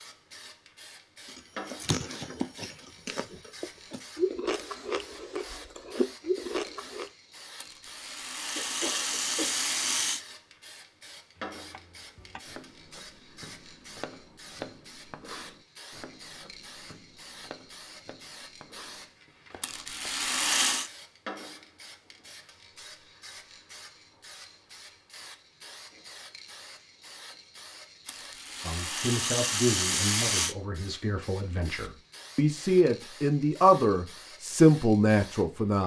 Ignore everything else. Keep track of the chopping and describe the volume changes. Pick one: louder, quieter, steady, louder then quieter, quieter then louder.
louder then quieter.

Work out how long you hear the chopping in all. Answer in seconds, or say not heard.
9 s.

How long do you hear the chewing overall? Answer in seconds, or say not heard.
6 s.